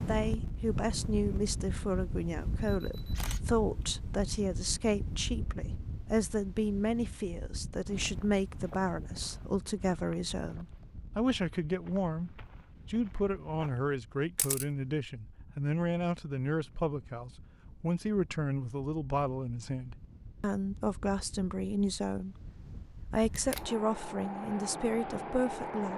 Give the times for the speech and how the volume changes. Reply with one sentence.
You can hear the speech from 0.1 to 22.5 s, at a steady volume; and briefly from 23.1 to 25.9 s.